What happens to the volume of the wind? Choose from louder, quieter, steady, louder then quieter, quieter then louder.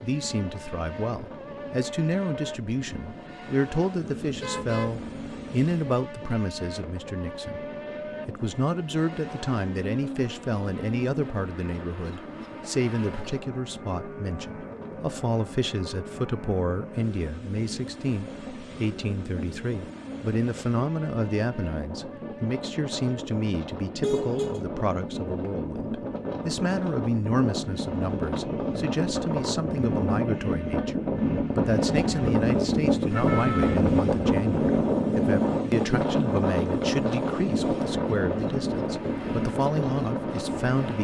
louder.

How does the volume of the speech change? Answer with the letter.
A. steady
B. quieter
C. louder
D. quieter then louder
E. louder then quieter
A.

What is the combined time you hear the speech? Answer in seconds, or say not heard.
40 s.